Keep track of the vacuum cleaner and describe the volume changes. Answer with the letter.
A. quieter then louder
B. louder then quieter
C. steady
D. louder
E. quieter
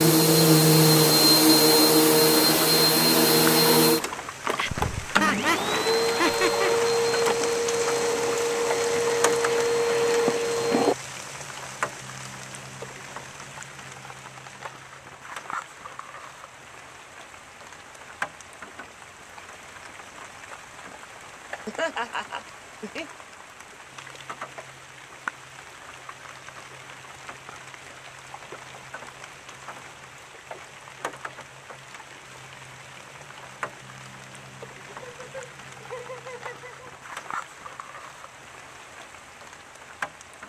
E.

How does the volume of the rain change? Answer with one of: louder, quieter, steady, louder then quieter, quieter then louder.
quieter.